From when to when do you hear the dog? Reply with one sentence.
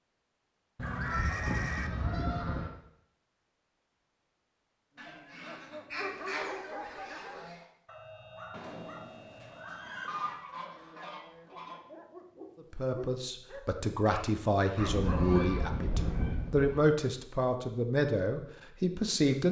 You can hear the dog from 5.0 to 15.5 s.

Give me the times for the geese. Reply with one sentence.
You can hear the geese from 0.8 to 2.7 s, from 5.0 to 7.6 s, from 10.1 to 11.8 s and from 14.8 to 16.8 s.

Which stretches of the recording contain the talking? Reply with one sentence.
You can hear the talking from 12.7 to 19.4 s.